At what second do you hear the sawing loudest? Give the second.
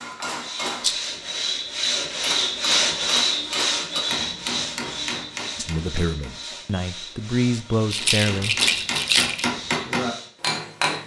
3 s.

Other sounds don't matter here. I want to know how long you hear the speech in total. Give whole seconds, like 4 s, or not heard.
3 s.